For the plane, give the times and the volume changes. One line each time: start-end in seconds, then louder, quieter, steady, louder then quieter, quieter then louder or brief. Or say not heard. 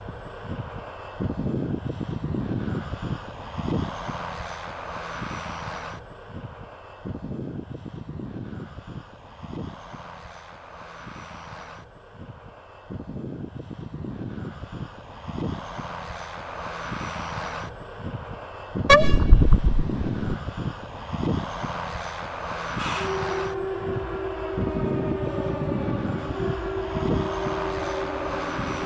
0.0-28.8 quieter then louder.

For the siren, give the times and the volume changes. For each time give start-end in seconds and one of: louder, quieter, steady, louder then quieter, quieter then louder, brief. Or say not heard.
22.8-28.8 steady.